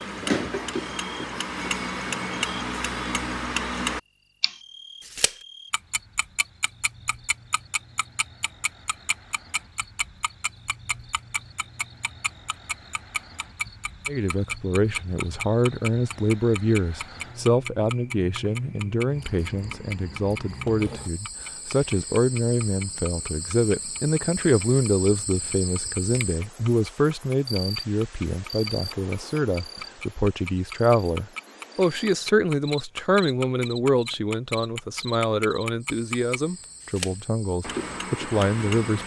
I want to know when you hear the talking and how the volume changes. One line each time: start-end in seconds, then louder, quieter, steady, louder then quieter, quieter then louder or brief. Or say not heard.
14.1-39.0 steady.